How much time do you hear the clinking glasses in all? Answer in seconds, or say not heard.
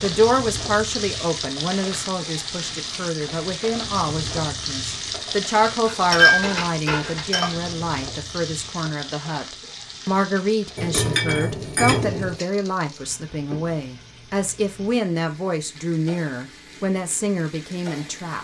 3 s.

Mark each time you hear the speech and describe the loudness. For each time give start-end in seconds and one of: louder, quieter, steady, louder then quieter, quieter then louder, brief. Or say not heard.
0.0-18.4 steady.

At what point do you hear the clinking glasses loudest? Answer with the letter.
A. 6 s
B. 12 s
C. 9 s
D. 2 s
A.